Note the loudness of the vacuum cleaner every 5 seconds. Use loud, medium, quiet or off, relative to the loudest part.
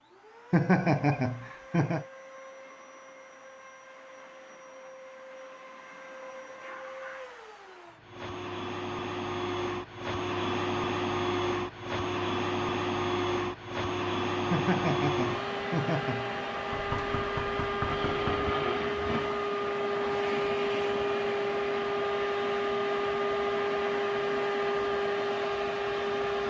quiet, medium, loud, loud, loud, loud.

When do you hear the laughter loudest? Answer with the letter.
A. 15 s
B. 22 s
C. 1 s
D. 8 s
C.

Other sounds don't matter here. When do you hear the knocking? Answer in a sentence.
The knocking can be heard from 16.7 to 18.4 s.